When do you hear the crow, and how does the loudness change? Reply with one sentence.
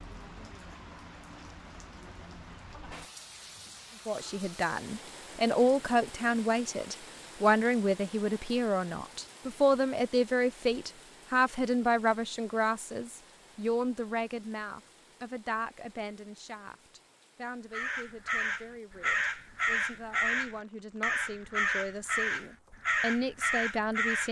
The crow can be heard from 17.7 to 24.2 s, at a steady volume.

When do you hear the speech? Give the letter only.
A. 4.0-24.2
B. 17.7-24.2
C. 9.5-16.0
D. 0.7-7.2
A.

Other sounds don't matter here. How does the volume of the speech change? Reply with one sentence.
The volume of the speech goes down, then up.